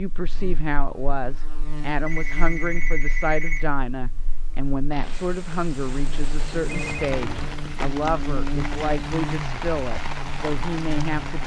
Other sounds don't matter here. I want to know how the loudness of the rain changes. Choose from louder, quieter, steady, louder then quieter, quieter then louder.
louder.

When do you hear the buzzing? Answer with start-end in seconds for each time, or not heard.
0.0-11.4.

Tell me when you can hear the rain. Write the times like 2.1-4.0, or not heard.
4.9-11.4.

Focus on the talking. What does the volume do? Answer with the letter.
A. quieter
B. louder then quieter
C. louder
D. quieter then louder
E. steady
E.